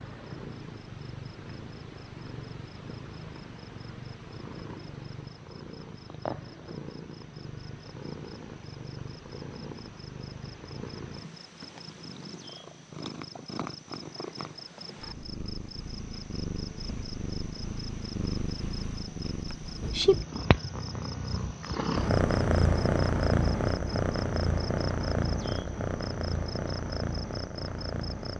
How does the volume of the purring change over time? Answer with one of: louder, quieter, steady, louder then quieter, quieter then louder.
louder.